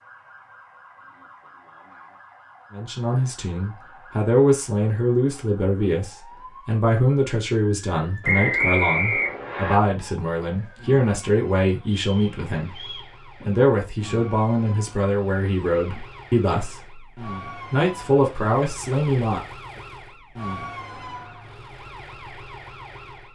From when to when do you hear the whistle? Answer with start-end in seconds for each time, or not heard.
8.2-9.8, 12.0-13.1.